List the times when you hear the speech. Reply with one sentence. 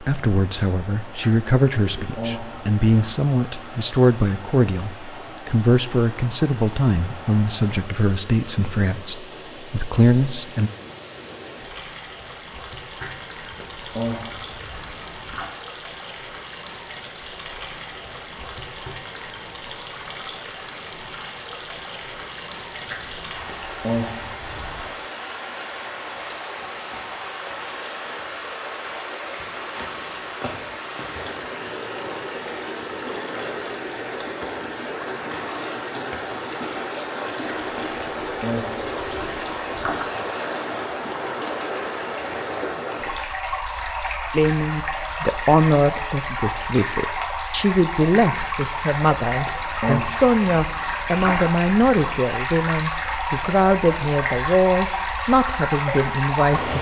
You can hear the speech from 0.0 to 10.7 s and from 44.3 to 56.7 s.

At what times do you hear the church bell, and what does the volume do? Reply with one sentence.
The church bell can't be heard in this clip.